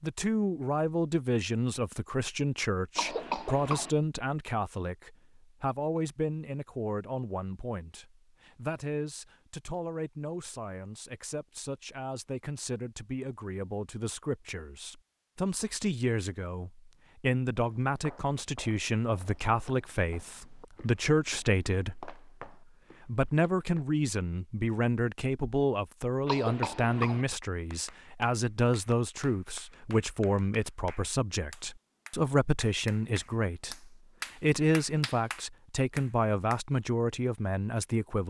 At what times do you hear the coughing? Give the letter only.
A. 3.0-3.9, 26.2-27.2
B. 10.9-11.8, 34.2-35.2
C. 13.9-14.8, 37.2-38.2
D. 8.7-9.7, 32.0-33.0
A.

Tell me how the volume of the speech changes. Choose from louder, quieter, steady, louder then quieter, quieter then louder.
quieter then louder.